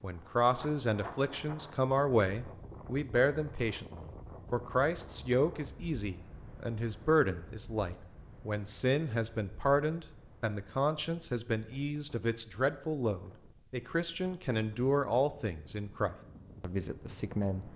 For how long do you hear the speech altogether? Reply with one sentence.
The speech can be heard for 18 seconds in total.